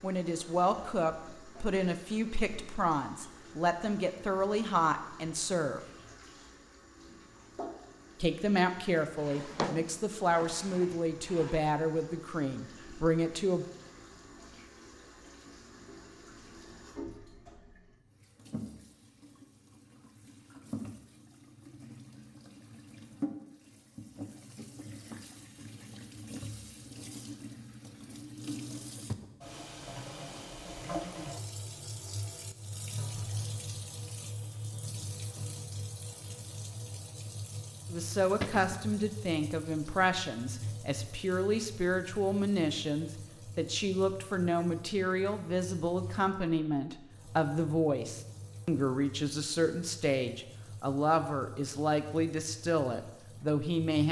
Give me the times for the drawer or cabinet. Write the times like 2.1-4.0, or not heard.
9.2-11.6, 38.4-38.9.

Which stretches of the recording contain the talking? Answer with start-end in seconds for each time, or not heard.
0.0-5.8, 8.2-13.7, 37.9-54.0.